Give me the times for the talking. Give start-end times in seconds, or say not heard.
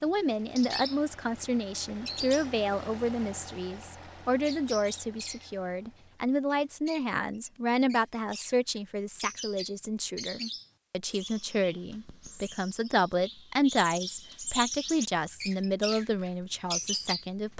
0.0-17.5.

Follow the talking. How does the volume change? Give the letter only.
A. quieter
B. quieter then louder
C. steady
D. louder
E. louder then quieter
C.